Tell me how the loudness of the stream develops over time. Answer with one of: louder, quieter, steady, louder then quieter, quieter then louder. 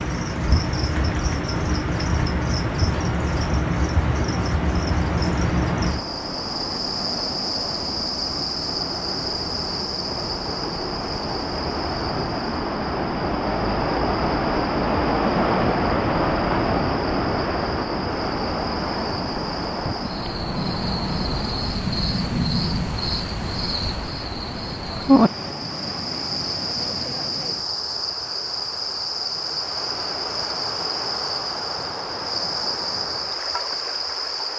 louder then quieter.